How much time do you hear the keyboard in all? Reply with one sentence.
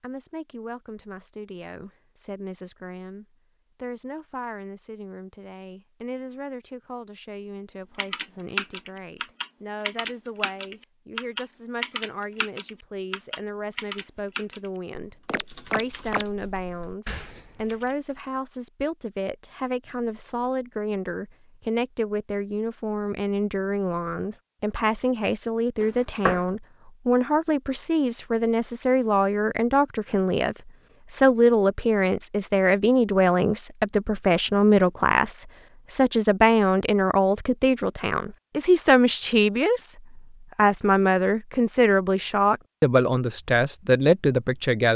The keyboard can be heard for 10 seconds in total.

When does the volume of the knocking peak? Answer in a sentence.
The loudest moment of the knocking is at 26 seconds.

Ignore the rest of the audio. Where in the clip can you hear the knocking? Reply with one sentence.
You can hear the knocking from 15.2 to 16.6 s and from 25.8 to 26.4 s.